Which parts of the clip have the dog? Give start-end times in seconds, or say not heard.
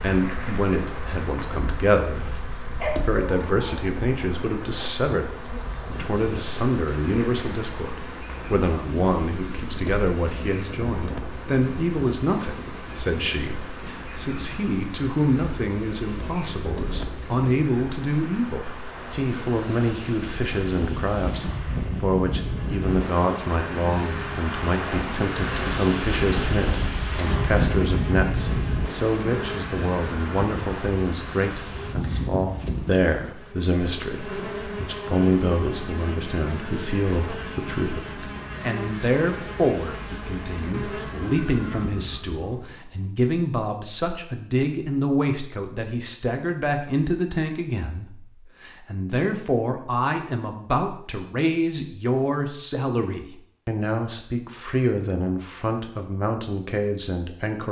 2.1-3.9.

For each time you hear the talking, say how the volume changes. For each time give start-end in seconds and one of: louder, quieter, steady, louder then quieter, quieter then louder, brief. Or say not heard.
0.0-57.6 steady.